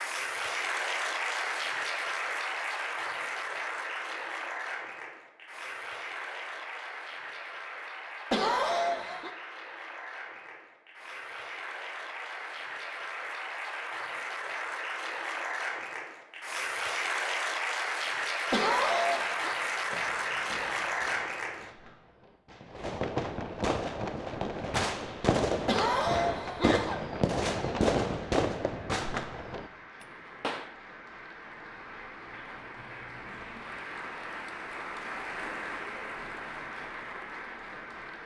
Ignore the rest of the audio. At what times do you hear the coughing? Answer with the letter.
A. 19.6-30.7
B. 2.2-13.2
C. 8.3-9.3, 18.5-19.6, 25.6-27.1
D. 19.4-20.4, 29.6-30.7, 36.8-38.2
C.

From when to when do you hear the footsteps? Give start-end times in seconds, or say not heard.
not heard.